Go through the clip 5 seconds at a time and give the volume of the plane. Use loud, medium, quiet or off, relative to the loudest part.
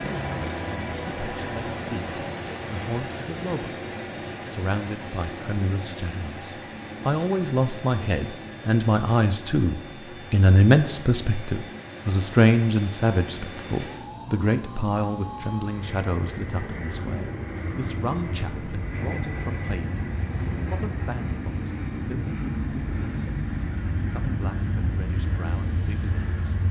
loud, medium, medium, loud, loud, loud.